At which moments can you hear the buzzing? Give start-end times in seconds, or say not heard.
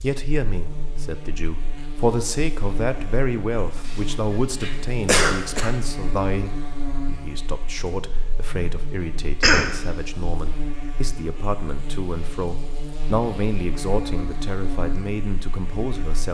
0.0-16.2.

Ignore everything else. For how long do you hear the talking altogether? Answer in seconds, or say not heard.
16 s.